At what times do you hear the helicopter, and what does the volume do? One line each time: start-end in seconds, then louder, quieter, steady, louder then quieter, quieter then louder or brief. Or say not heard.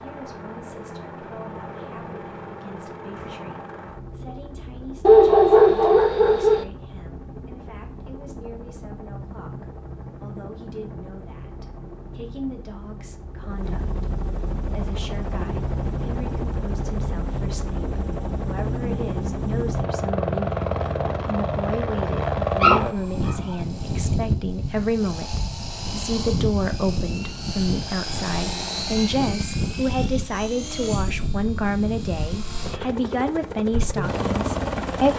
0.0-35.1 louder.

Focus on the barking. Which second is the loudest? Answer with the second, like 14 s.
5 s.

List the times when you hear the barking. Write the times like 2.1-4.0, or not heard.
5.0-6.7, 22.6-23.6.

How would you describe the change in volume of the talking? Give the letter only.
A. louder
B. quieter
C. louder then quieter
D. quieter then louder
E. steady
A.